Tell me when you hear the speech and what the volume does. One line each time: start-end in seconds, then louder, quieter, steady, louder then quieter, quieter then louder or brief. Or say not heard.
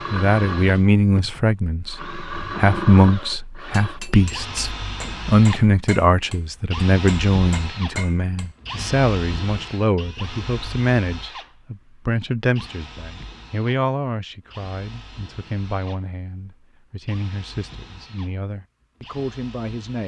0.1-20.0 quieter.